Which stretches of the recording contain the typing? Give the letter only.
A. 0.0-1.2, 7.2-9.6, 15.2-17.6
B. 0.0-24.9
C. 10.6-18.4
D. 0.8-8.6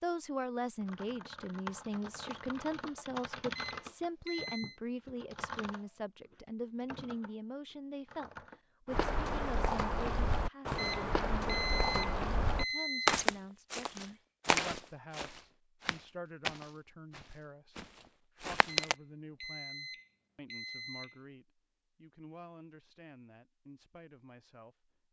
D.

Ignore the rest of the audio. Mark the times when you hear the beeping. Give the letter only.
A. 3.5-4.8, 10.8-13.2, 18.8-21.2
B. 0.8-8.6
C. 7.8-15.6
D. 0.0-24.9
A.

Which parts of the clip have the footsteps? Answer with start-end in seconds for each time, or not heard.
8.9-18.9.